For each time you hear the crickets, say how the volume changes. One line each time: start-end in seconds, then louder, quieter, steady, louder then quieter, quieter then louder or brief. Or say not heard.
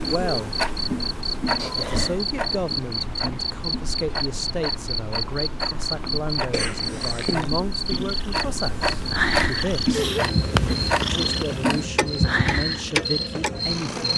0.0-14.1 steady.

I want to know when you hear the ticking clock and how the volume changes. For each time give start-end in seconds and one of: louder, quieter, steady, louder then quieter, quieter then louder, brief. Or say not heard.
0.0-13.6 quieter then louder.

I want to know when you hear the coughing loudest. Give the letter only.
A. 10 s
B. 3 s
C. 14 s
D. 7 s
A.